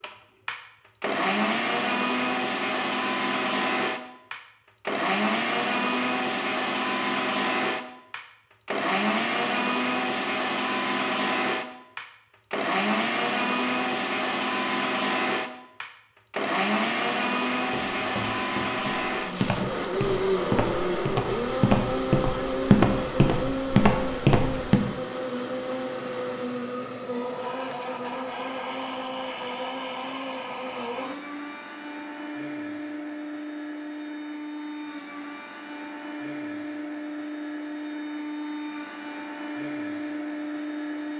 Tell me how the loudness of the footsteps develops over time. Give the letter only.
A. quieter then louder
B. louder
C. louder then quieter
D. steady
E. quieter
B.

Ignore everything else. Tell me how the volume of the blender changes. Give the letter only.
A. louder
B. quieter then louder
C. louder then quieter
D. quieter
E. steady
D.